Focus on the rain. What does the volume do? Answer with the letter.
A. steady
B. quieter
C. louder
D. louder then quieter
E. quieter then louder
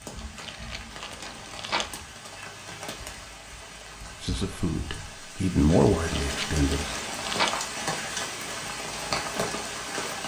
C.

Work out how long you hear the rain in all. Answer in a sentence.
You can hear the rain for 10 seconds altogether.